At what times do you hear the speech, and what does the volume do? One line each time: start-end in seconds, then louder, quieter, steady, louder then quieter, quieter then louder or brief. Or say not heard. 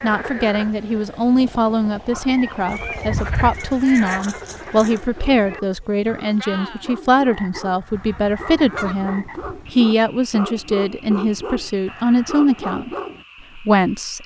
0.0-12.9 steady
13.6-14.2 brief.